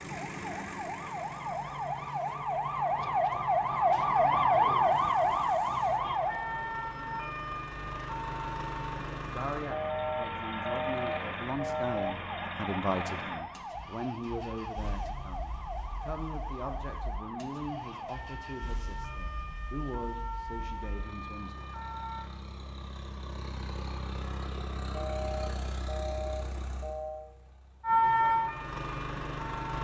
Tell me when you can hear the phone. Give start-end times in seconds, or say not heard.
9.7-12.2, 24.9-27.3.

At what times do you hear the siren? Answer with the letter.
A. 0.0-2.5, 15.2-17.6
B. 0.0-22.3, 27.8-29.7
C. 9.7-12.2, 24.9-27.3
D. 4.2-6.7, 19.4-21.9
B.